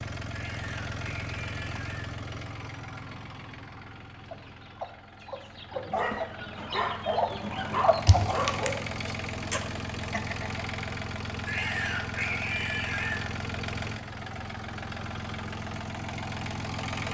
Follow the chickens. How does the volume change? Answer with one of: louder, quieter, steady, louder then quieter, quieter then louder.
louder then quieter.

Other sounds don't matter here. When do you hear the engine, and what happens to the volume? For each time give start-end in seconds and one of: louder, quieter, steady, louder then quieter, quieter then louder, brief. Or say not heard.
0.0-17.0 quieter then louder.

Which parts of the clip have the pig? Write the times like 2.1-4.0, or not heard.
0.3-2.1, 11.4-13.3.